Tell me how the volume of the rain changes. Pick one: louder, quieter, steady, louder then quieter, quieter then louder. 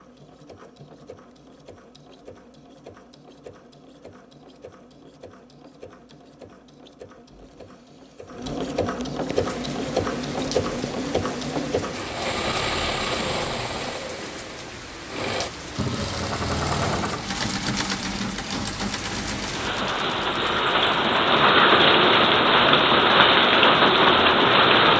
louder.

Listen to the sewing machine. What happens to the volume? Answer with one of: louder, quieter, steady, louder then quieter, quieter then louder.
louder then quieter.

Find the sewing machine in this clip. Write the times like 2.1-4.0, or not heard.
0.0-24.9.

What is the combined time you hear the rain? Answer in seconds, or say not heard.
16 s.